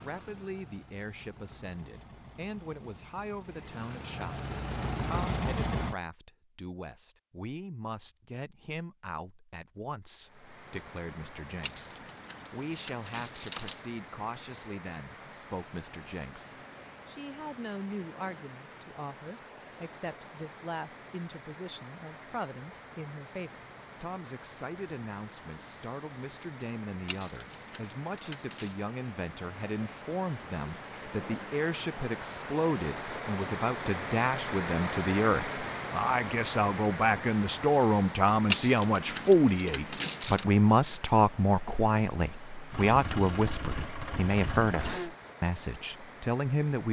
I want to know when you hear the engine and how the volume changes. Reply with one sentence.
You can hear the engine from 0.0 to 6.0 s, getting louder; and briefly from 42.7 to 45.1 s.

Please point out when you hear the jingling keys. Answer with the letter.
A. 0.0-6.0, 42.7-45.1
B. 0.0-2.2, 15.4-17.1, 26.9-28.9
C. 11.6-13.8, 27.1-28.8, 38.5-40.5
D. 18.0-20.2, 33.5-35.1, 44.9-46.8
C.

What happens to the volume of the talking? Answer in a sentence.
The loudness of the talking goes up.